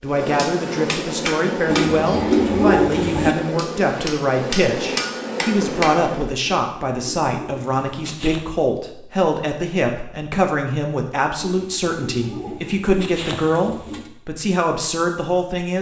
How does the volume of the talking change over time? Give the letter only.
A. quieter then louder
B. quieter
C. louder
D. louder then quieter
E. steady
E.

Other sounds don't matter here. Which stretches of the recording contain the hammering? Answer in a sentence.
You can hear the hammering from 0.1 to 6.3 s.